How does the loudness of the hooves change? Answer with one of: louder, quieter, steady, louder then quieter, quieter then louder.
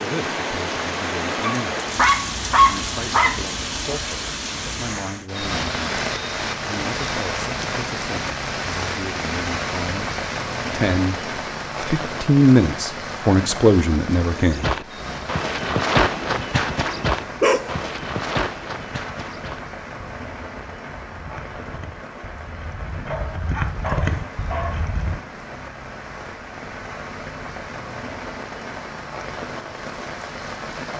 quieter then louder.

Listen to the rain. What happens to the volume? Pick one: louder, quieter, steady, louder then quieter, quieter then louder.
quieter.